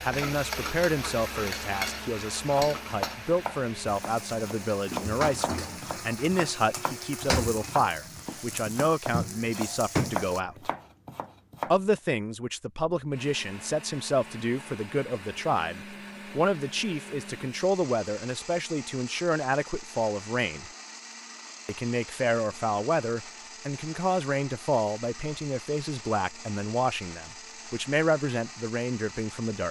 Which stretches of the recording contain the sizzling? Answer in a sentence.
You can hear the sizzling from 0.0 to 10.4 s.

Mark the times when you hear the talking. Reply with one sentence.
The talking can be heard from 0.0 to 10.7 s, from 11.7 to 20.6 s and from 21.6 to 29.6 s.